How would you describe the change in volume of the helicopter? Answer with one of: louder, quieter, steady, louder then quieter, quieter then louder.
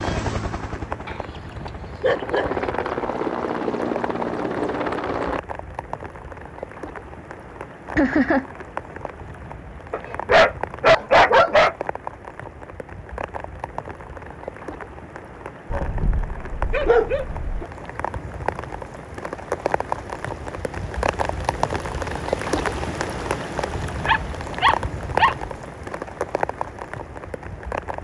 louder.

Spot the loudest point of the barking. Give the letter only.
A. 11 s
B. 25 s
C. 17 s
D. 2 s
A.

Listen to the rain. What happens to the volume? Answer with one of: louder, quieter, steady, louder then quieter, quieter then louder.
louder.